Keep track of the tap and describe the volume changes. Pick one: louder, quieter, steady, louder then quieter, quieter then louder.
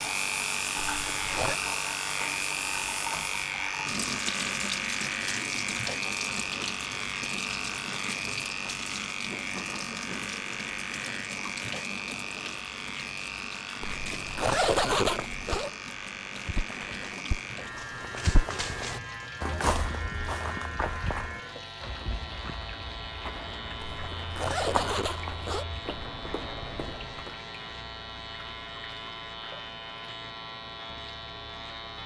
quieter.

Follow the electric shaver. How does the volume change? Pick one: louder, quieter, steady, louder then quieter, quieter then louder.
quieter.